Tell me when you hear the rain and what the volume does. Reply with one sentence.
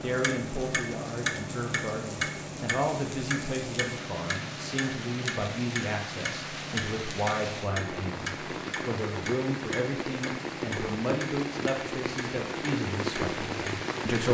You can hear the rain from 0.0 to 14.2 s, getting louder.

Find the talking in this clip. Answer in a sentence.
You can hear the talking from 0.0 to 14.2 s.